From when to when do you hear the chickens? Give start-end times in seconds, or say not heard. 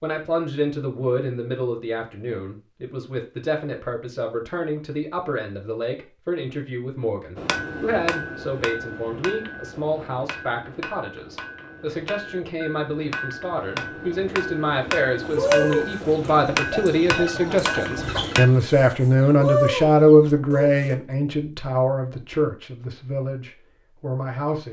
15.2-20.9.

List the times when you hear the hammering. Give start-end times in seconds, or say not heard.
7.3-18.5.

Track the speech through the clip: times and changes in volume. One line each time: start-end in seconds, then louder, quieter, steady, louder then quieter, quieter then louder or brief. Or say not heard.
0.0-24.6 louder.